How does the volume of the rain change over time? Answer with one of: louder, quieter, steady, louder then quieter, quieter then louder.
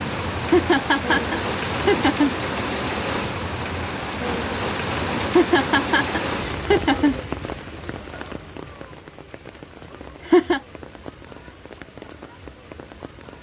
quieter.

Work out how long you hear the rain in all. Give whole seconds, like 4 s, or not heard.
13 s.